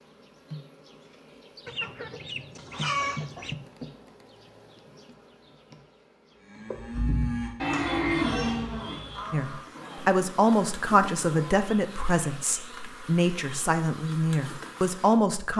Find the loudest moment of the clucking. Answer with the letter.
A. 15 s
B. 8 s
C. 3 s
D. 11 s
C.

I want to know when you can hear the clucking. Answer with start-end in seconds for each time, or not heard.
1.6-3.5.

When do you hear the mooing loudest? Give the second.
8 s.